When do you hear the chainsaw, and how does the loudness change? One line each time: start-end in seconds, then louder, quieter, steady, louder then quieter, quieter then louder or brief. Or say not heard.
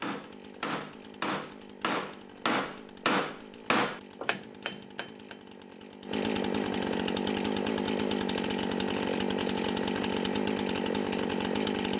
0.0-11.9 louder.